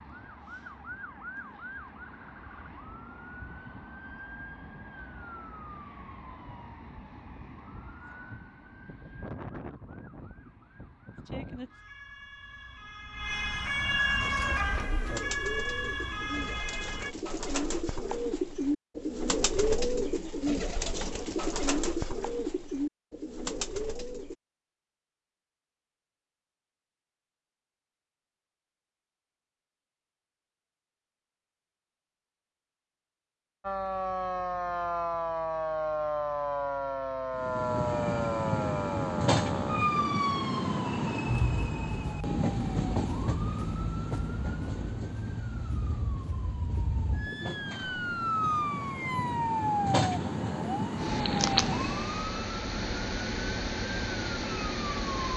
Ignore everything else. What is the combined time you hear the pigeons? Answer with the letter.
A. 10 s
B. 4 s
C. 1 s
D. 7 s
A.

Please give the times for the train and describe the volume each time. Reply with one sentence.
The train can be heard from 37.4 to 52.2 s, getting quieter then louder.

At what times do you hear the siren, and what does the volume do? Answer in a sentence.
The siren can be heard from 0.0 to 17.1 s, getting louder; and from 33.6 to 55.3 s, getting quieter then louder.